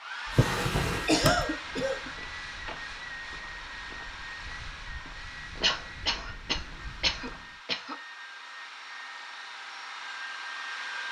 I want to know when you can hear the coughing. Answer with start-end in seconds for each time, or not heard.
1.1-2.1, 5.6-8.0.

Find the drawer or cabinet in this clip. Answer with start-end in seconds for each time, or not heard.
0.2-1.6.